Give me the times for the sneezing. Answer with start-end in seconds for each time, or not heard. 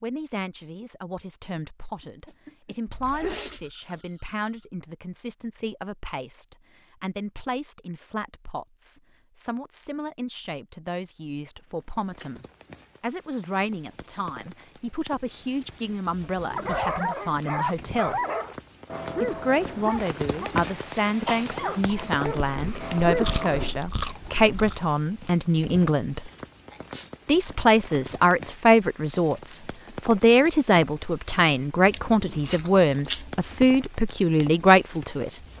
2.0-4.0, 21.2-21.9, 26.1-27.1.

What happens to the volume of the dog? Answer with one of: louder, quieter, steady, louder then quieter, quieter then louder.
quieter then louder.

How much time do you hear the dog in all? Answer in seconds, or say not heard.
7 s.